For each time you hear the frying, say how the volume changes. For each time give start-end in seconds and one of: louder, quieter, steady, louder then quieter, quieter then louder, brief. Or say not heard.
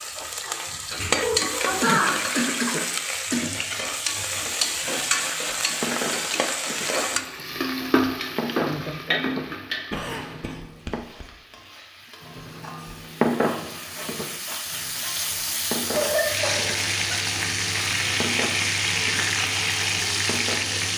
0.0-20.9 quieter then louder.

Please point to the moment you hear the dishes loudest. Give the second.
13 s.